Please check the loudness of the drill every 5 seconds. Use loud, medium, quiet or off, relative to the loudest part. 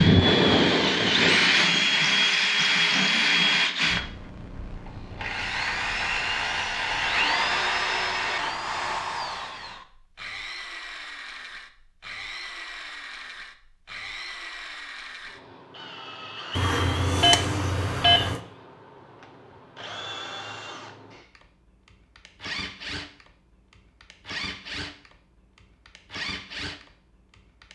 loud, medium, quiet, quiet, quiet, quiet.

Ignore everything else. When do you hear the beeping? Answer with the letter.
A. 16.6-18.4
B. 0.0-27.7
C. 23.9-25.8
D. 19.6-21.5
A.